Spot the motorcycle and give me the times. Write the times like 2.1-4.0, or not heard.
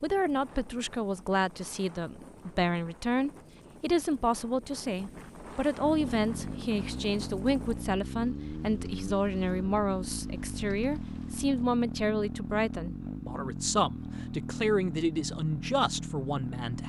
5.8-16.8.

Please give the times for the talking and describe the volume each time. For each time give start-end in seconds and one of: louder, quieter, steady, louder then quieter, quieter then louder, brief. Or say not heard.
0.0-16.8 steady.